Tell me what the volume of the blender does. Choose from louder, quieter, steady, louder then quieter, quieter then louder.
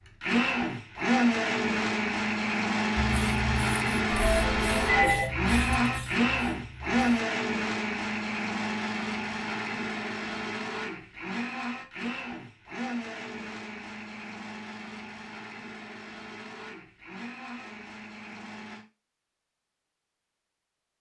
quieter.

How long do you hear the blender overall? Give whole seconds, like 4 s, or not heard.
19 s.